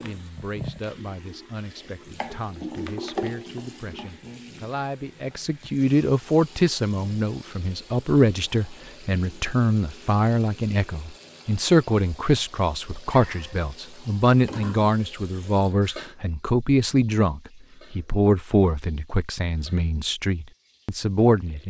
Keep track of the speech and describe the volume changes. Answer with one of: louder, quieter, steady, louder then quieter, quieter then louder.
louder.